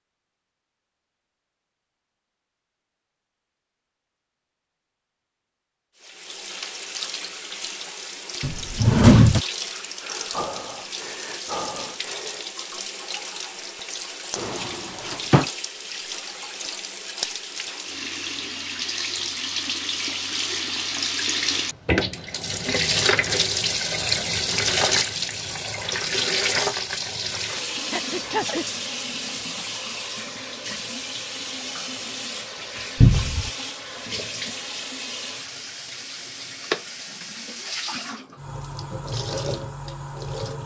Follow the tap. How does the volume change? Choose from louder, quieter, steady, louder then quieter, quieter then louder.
louder then quieter.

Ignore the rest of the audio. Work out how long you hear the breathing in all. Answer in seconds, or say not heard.
3 s.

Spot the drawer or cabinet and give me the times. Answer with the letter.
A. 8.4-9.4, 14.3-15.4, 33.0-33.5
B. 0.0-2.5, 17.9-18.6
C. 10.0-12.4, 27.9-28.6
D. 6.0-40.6
A.